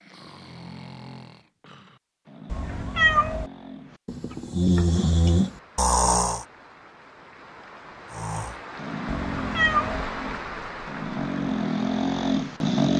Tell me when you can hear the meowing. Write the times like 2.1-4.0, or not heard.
2.5-3.5, 9.3-10.1.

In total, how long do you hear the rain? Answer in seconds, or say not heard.
8 s.